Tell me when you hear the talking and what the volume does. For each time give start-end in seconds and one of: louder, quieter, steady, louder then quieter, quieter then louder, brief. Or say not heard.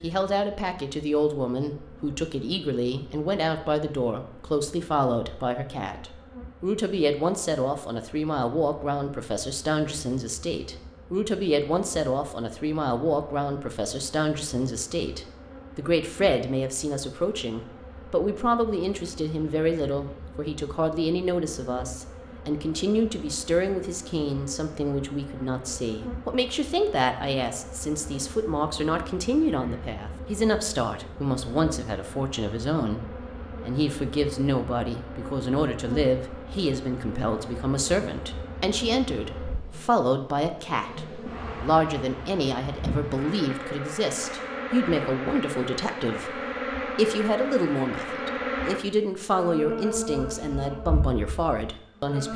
0.0-52.3 steady.